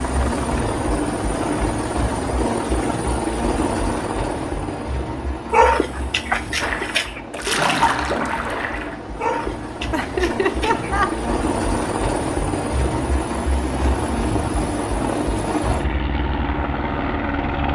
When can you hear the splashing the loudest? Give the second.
8 s.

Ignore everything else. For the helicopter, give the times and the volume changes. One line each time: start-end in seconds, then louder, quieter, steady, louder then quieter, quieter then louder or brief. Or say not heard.
0.0-17.7 quieter then louder.